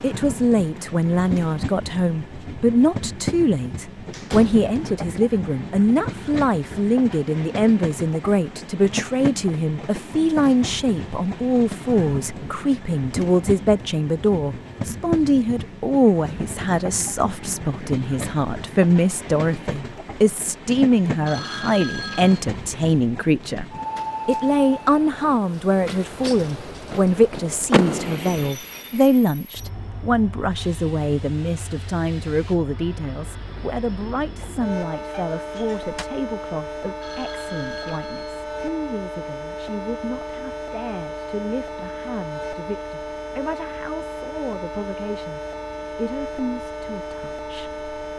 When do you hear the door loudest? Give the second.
28 s.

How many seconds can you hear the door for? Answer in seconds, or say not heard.
2 s.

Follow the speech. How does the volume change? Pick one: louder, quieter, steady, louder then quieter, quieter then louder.
quieter.